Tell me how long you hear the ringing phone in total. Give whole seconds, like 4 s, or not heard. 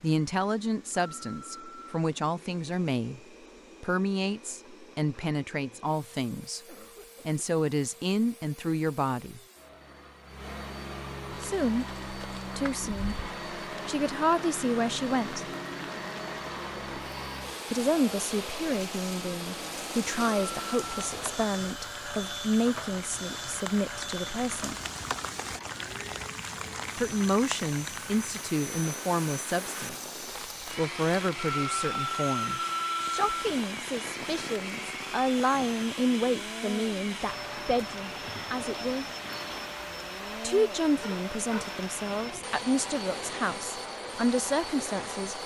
4 s.